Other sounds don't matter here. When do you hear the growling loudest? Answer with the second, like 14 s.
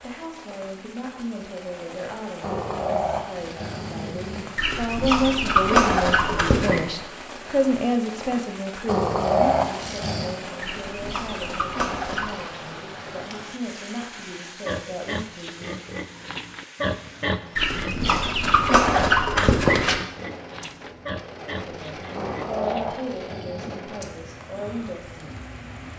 9 s.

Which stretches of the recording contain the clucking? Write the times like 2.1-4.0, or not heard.
4.5-6.8, 10.6-12.4, 17.6-20.0.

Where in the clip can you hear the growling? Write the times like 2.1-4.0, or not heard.
2.4-4.5, 8.8-10.3, 22.1-23.9.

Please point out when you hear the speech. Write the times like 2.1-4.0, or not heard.
0.0-15.8, 21.6-25.4.